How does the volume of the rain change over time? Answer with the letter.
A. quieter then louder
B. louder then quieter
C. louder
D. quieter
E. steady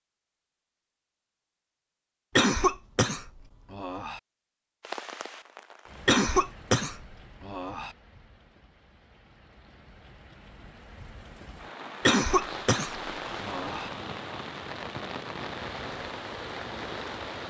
A.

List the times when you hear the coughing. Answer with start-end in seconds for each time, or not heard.
2.4-4.2, 6.0-7.9, 12.1-13.9.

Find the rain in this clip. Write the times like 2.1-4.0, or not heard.
4.8-17.4.